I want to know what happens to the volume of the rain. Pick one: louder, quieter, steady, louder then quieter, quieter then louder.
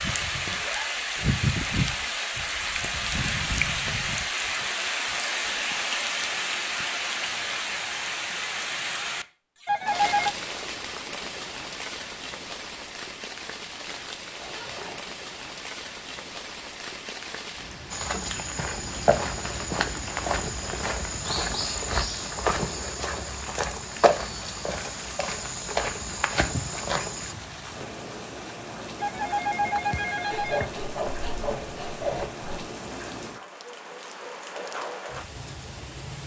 quieter.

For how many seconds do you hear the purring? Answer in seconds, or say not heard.
not heard.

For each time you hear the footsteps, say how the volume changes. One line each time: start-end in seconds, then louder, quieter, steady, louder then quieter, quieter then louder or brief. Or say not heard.
17.9-27.4 steady.